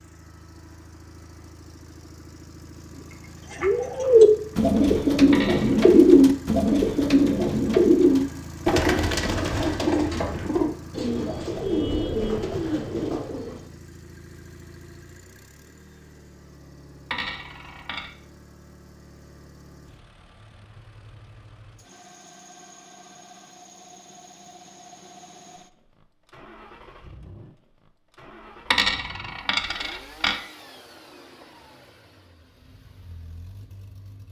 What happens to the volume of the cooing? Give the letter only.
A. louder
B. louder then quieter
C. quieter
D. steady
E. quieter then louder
C.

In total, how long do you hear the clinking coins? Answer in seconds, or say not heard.
3 s.